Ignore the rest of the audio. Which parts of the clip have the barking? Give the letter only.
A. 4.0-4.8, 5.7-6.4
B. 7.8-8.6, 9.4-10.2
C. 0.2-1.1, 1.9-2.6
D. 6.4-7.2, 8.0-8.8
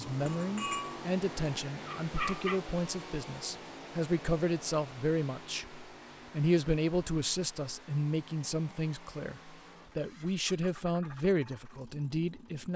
C.